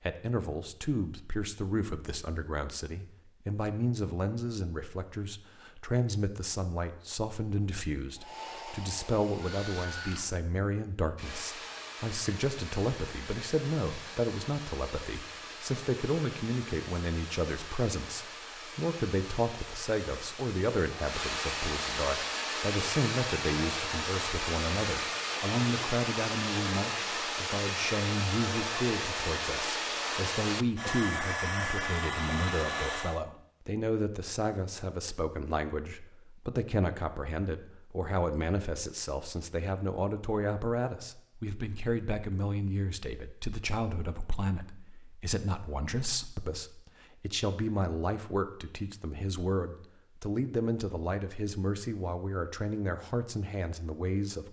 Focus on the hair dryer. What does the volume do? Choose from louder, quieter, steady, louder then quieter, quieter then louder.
louder.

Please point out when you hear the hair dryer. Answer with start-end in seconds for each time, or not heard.
8.2-33.2.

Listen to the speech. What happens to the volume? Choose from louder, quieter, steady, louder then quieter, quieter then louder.
steady.